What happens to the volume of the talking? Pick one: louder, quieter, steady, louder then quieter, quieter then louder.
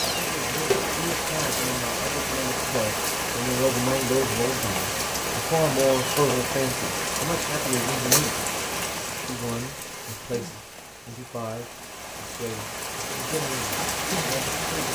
louder then quieter.